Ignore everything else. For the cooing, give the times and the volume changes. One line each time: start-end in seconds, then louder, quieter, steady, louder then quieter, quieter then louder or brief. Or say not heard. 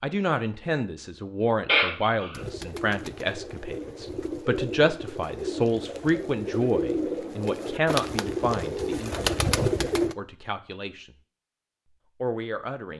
2.3-10.2 louder.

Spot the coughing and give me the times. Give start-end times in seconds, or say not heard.
1.6-2.4.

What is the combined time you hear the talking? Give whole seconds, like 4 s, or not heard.
12 s.